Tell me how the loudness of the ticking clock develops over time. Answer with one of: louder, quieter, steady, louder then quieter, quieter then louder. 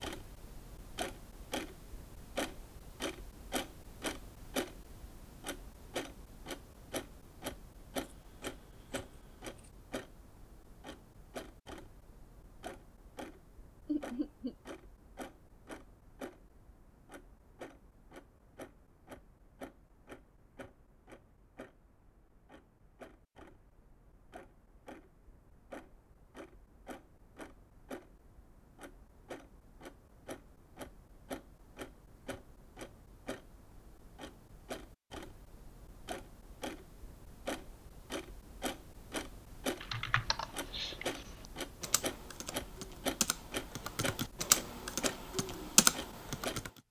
quieter then louder.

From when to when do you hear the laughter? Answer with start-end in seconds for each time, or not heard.
13.8-14.6.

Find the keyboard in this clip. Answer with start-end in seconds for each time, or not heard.
39.8-41.0, 41.8-46.7.